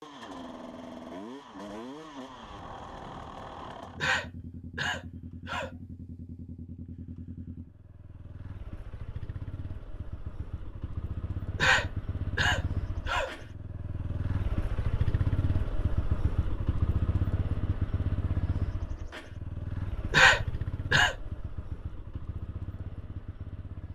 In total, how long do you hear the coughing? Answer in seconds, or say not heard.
5 s.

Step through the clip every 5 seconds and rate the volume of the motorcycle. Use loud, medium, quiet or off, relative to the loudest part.
medium, medium, medium, loud, medium.